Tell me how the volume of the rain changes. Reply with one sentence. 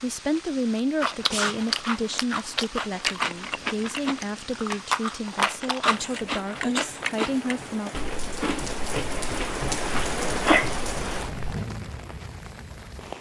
The loudness of the rain goes up.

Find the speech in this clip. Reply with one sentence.
You can hear the speech from 0.0 to 7.9 s.